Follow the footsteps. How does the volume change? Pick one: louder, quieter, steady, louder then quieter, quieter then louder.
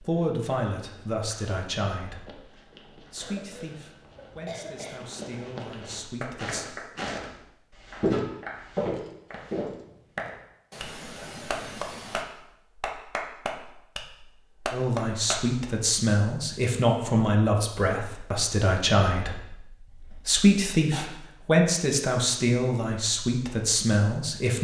louder.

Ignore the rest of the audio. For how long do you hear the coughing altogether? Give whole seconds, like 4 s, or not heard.
5 s.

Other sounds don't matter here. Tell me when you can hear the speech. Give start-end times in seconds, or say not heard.
0.0-6.7, 14.7-24.5.